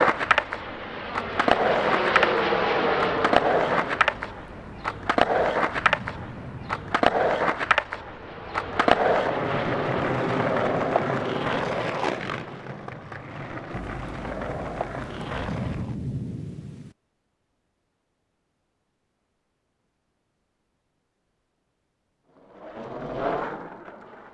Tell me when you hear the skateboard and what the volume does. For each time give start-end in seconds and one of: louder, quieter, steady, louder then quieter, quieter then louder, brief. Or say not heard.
0.0-15.9 quieter
22.3-24.3 brief.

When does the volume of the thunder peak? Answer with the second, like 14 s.
16 s.